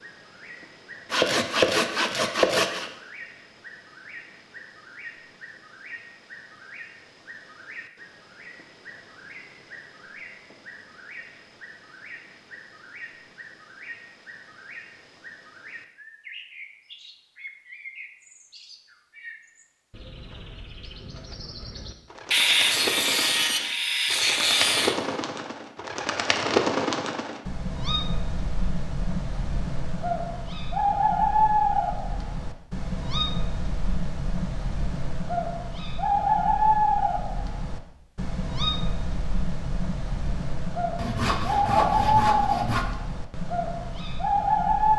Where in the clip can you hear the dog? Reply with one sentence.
You can't hear the dog here.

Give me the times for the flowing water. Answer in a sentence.
You can't hear the flowing water here.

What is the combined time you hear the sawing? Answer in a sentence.
The sawing can be heard for 6 seconds in total.